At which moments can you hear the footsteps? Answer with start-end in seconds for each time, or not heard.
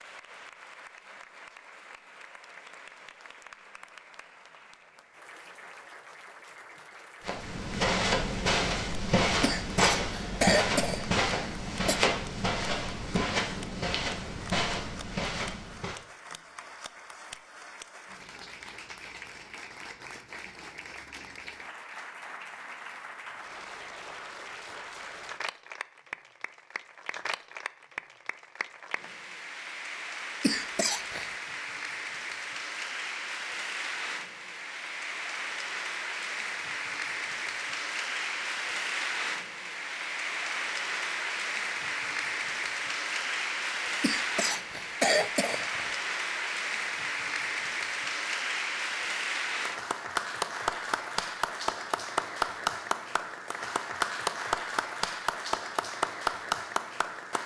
7.2-16.0.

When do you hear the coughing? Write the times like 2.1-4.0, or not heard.
9.4-12.0, 30.4-31.3, 44.0-46.0.